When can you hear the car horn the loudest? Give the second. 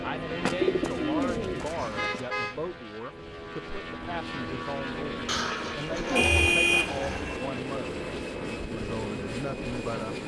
7 s.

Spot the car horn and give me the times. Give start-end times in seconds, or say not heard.
1.9-2.5, 6.2-7.4.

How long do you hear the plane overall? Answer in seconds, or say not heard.
10 s.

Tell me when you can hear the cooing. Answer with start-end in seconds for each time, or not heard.
0.4-2.2, 5.2-7.2.